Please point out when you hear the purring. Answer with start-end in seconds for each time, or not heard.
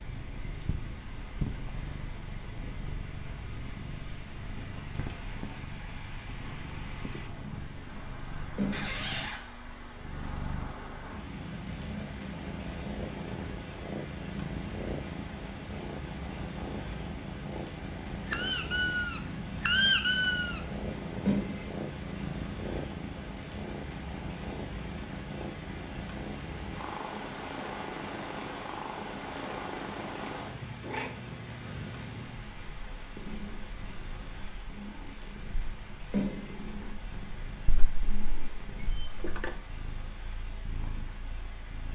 0.0-41.8.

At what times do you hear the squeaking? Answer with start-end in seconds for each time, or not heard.
8.7-9.4, 18.2-20.6, 37.6-39.5.